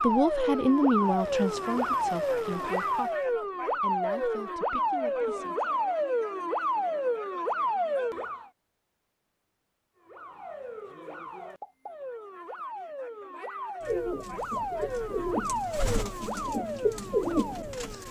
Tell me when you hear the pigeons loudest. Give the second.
17 s.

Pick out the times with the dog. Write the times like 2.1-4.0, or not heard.
not heard.